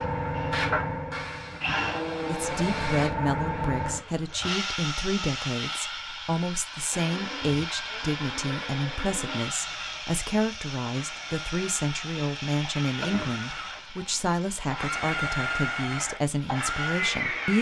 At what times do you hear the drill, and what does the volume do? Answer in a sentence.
You can hear the drill from 0.0 to 4.5 s, getting louder then quieter; and from 6.9 to 17.5 s, getting louder.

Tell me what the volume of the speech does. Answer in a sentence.
The loudness of the speech stays about the same.